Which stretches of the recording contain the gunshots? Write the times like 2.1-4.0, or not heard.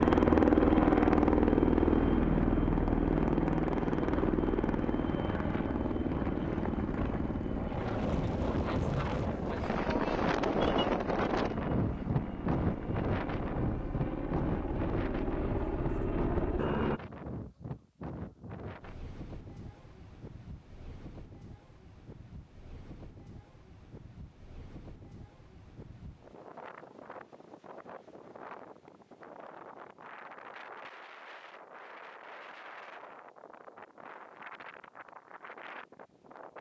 not heard.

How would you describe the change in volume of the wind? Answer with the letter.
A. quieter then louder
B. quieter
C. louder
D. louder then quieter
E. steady
B.